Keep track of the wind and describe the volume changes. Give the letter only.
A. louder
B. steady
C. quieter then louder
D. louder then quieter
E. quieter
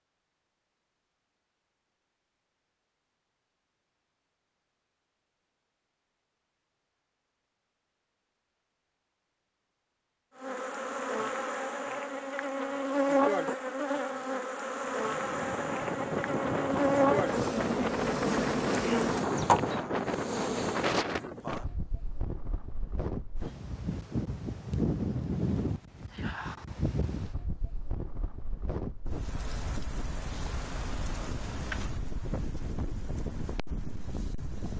E.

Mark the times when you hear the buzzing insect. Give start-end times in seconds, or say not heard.
10.4-20.9.